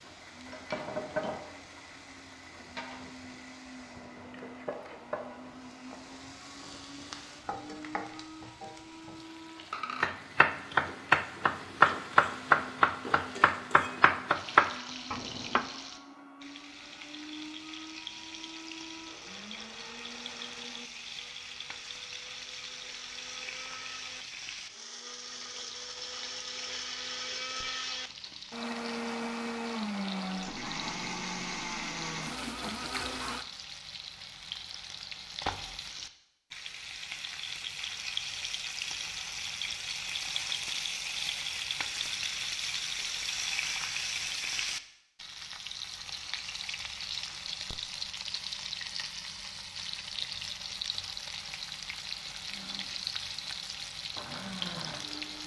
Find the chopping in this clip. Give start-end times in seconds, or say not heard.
10.0-15.7.